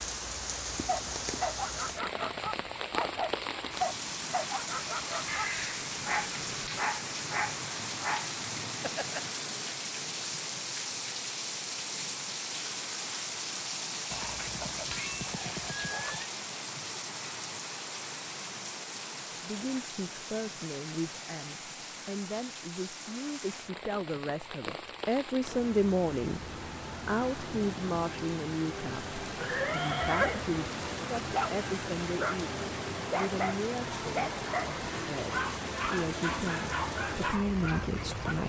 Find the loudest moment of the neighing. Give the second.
30 s.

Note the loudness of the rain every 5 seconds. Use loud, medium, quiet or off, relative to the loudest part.
loud, loud, loud, loud, medium, loud, loud, loud.